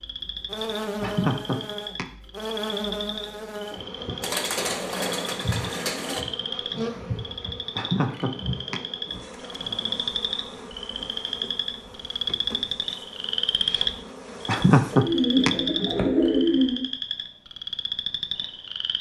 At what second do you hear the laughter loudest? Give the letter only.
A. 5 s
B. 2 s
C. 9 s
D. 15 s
D.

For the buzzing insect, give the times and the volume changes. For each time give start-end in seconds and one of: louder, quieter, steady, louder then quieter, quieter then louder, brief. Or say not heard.
0.0-15.0 quieter.